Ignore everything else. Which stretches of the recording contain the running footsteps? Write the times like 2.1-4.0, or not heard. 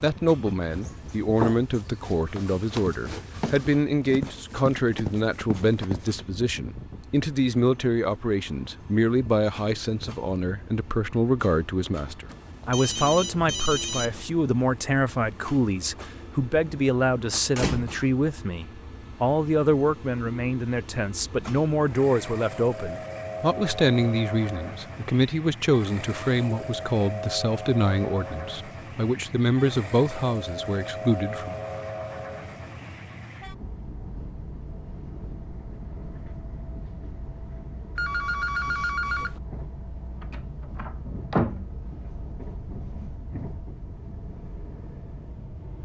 0.7-6.1.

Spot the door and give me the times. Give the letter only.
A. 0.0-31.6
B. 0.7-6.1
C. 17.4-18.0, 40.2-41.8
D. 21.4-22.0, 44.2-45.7
C.